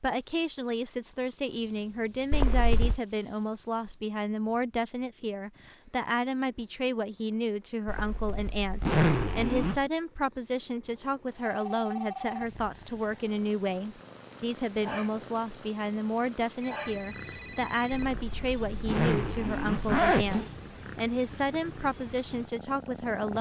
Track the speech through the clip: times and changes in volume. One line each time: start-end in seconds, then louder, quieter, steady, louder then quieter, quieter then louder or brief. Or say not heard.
0.0-23.3 steady.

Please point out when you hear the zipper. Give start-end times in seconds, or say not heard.
2.3-3.0, 7.8-9.8, 17.9-20.4.